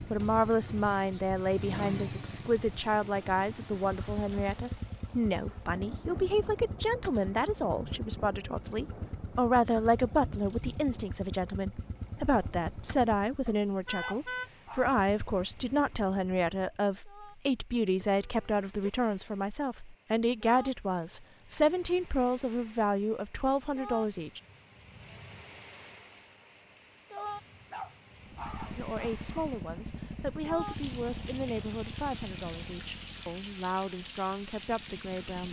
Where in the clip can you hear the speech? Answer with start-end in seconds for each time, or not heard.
0.1-24.4, 28.8-35.4.